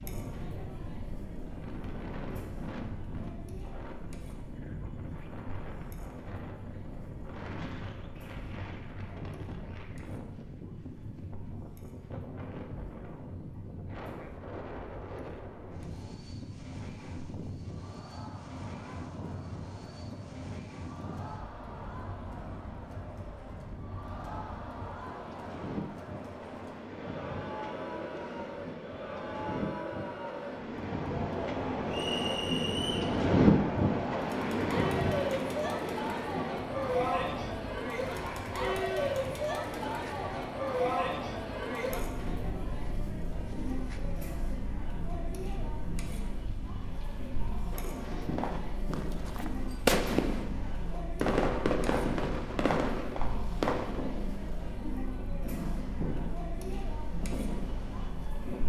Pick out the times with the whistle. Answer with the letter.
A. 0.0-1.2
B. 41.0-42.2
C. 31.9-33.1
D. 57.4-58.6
C.